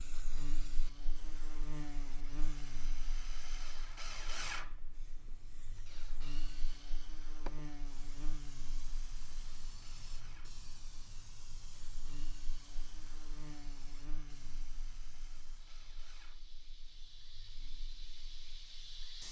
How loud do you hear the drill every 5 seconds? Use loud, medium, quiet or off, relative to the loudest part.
loud, medium, quiet, quiet.